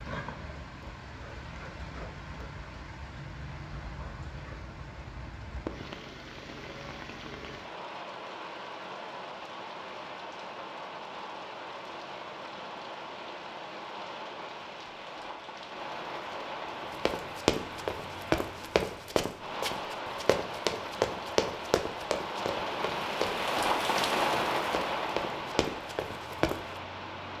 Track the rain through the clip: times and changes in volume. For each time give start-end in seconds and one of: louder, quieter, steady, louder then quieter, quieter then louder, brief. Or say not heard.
0.0-27.3 louder.